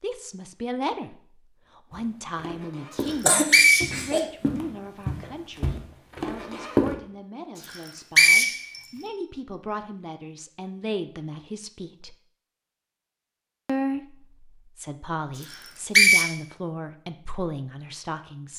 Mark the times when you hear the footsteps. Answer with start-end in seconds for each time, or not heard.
1.9-7.0.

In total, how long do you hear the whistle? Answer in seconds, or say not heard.
3 s.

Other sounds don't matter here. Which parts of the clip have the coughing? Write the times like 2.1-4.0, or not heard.
3.2-4.2.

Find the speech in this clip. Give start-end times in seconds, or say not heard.
0.0-1.1, 1.8-12.2, 13.7-18.5.